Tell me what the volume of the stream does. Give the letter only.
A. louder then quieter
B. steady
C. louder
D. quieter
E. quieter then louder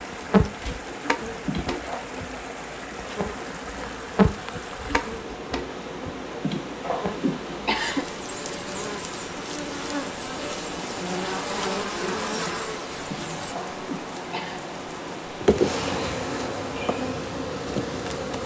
B.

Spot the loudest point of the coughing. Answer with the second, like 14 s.
8 s.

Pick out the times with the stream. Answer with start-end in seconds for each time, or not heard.
0.0-18.4.